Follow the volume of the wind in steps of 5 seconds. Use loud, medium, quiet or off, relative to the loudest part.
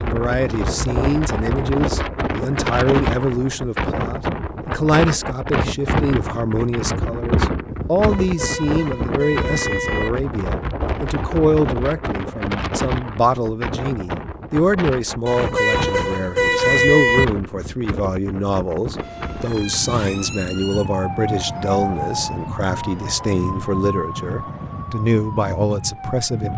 loud, loud, loud, medium, medium, medium.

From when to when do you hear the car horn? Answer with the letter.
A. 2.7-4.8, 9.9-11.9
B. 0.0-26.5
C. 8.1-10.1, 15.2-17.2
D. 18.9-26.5
C.